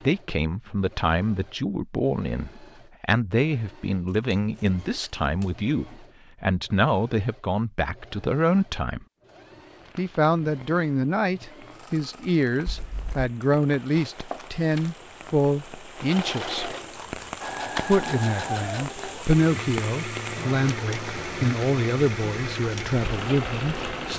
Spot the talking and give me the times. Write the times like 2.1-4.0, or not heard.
0.0-9.1, 9.9-16.8, 17.8-24.1.